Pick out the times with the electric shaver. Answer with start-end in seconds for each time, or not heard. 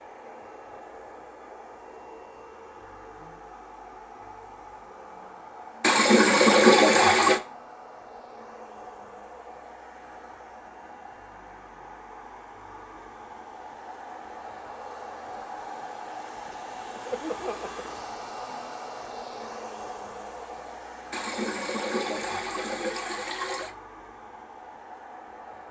not heard.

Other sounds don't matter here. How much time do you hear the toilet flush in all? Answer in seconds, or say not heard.
4 s.